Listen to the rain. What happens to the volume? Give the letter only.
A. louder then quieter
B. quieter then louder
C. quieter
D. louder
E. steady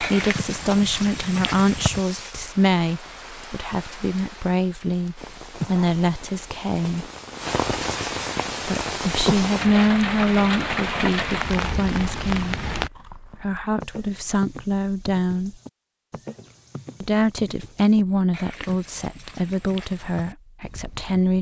D.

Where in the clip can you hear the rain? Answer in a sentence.
You can hear the rain from 0.0 to 12.9 s.